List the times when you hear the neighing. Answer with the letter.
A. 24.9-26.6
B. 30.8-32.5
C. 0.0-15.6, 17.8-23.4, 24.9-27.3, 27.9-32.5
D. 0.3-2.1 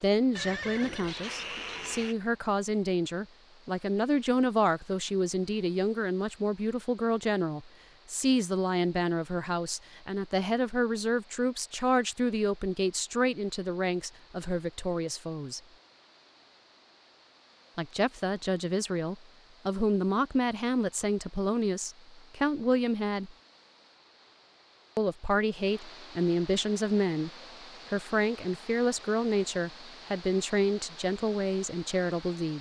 D.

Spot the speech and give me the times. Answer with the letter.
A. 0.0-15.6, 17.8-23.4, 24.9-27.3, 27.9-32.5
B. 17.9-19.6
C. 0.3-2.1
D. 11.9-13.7
A.